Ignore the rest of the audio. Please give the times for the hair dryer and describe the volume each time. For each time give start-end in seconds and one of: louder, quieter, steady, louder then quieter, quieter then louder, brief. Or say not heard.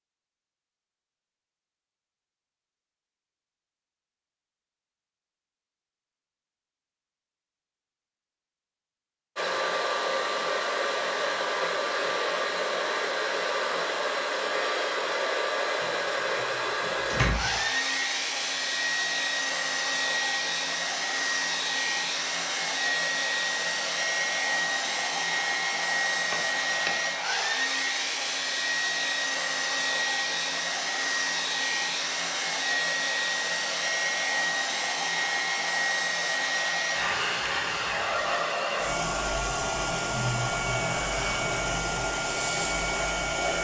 9.3-43.5 steady.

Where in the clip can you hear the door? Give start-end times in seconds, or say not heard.
15.8-17.6, 26.3-26.9.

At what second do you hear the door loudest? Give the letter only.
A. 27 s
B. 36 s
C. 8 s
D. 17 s
D.